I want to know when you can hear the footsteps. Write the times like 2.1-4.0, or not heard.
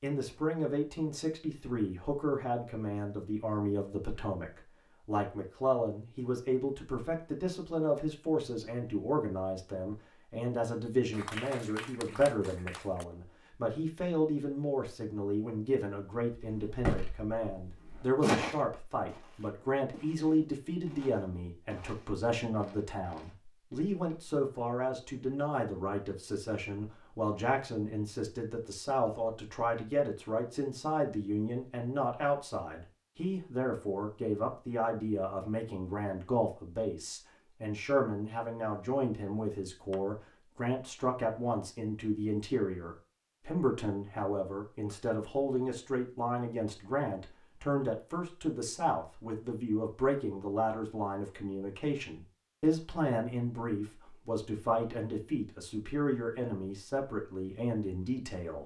16.3-24.4.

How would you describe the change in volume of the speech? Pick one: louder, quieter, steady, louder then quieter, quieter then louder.
steady.